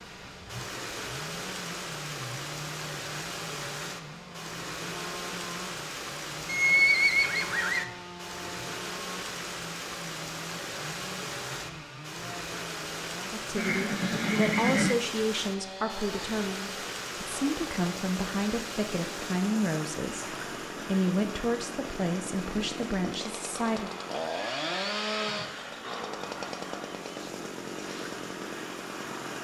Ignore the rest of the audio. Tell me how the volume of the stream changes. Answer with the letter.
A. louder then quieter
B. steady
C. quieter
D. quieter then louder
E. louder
C.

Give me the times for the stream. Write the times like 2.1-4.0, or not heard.
0.0-29.3.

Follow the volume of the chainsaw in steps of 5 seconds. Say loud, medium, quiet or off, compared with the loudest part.
medium, medium, medium, medium, loud, loud.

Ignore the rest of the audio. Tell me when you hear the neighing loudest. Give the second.
7 s.